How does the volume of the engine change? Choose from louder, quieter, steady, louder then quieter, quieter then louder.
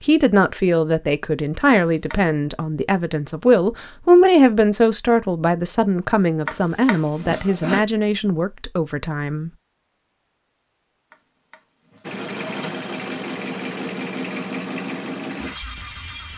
steady.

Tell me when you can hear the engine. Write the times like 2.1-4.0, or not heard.
12.0-16.3.